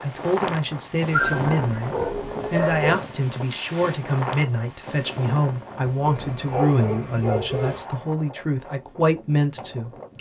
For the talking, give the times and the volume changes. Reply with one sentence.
The talking can be heard from 0.0 to 10.1 s, at a steady volume.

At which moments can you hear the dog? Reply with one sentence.
The dog can be heard from 1.1 to 3.0 s and from 6.0 to 7.8 s.